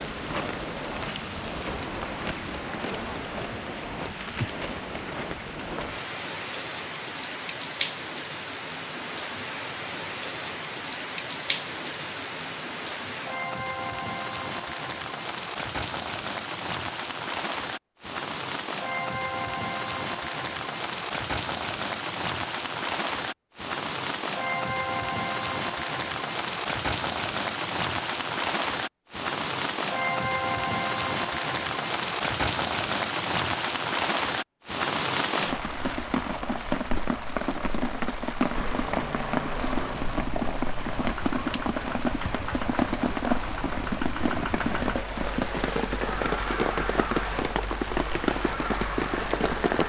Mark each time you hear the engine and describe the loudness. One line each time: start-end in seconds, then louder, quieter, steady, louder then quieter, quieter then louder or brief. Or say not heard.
38.5-49.8 steady.